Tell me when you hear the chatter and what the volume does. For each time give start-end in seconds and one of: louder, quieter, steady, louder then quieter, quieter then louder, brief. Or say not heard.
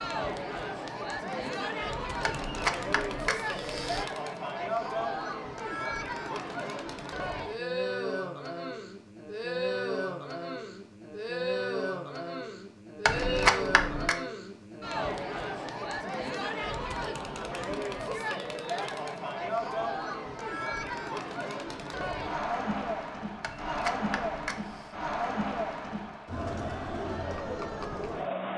0.0-28.5 steady.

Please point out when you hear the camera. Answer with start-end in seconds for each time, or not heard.
2.2-4.0, 13.1-14.2, 23.4-24.9.